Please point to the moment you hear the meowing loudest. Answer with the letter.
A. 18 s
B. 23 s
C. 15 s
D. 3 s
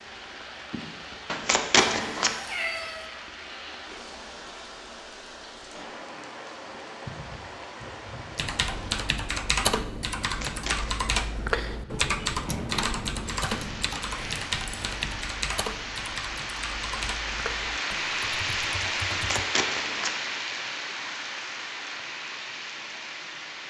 D.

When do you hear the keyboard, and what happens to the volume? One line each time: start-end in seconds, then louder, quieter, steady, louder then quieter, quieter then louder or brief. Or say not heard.
8.3-19.4 quieter.